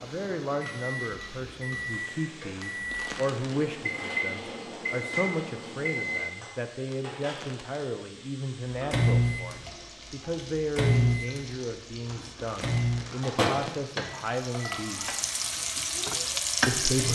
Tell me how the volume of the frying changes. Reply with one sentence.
The loudness of the frying goes up.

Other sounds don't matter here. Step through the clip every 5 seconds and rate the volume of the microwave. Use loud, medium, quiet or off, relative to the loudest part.
medium, loud, loud, quiet.